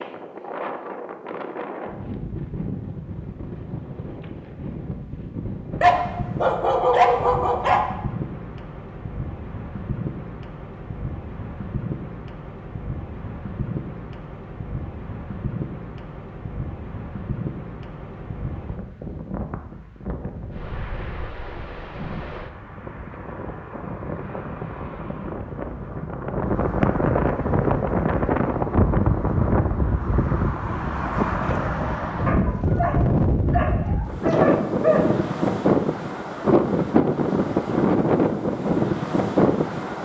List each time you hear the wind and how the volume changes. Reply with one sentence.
The wind can be heard from 0.0 to 40.0 s, getting louder.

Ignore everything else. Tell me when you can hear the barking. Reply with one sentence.
The barking can be heard from 5.8 to 7.8 s and from 32.2 to 35.0 s.